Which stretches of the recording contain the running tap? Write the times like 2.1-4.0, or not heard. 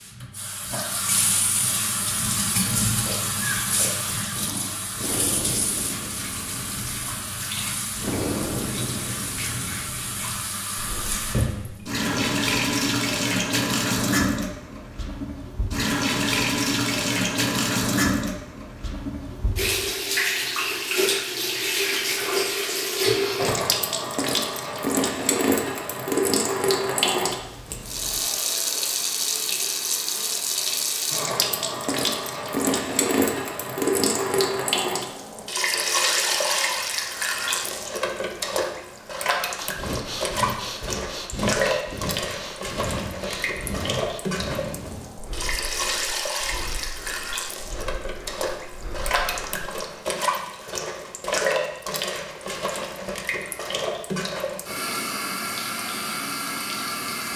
0.0-57.3.